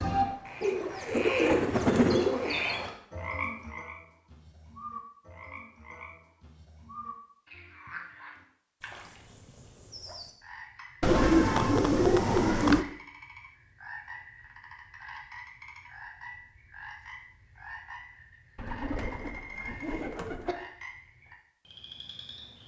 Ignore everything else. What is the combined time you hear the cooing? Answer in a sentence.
The cooing can be heard for 6 seconds in total.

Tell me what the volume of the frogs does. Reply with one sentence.
The volume of the frogs goes down.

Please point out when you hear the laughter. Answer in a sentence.
The laughter can't be heard in this clip.